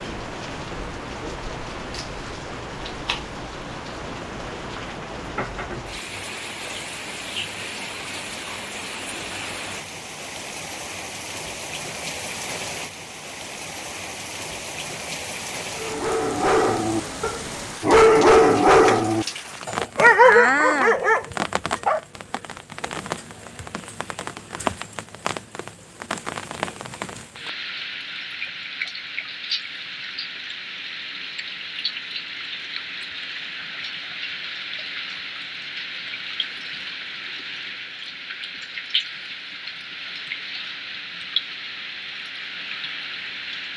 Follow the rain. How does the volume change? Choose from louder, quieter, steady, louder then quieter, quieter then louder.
steady.